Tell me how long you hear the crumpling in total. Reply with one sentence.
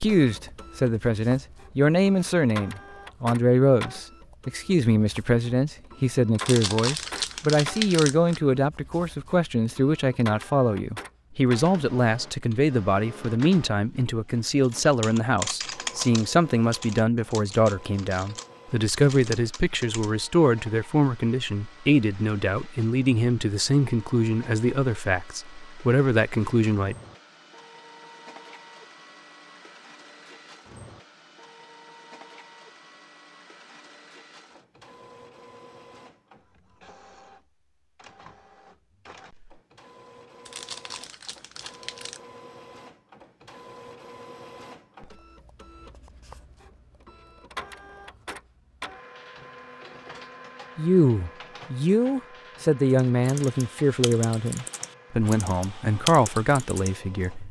The crumpling can be heard for 4 seconds in total.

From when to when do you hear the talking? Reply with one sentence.
The talking can be heard from 0.0 to 26.9 s and from 50.8 to 57.4 s.